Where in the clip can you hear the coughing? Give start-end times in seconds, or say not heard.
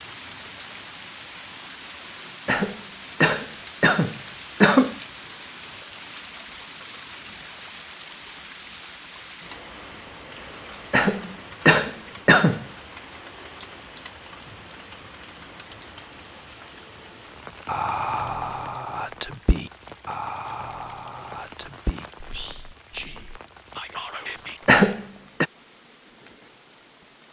2.5-5.0, 10.9-12.7, 24.6-25.4.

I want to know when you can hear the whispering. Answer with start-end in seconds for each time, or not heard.
17.6-24.7.